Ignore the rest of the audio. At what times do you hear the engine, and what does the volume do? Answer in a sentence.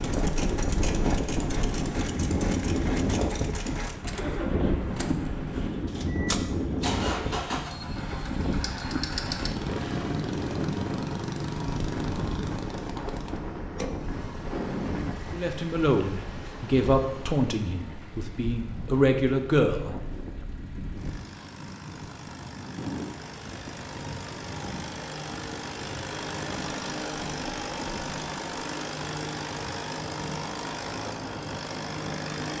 You can hear the engine from 0.0 to 32.5 s, getting quieter then louder.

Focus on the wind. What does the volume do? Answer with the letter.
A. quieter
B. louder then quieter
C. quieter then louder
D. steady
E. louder
A.